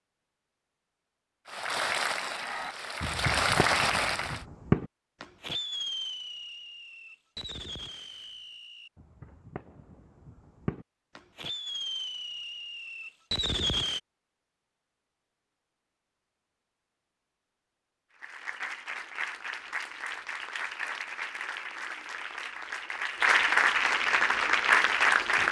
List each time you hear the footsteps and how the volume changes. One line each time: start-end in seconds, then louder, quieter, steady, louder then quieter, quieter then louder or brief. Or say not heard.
not heard.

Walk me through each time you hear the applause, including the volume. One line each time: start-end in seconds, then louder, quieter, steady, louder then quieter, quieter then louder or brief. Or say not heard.
1.4-4.4 brief
18.2-25.4 louder.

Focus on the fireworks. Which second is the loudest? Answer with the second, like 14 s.
5 s.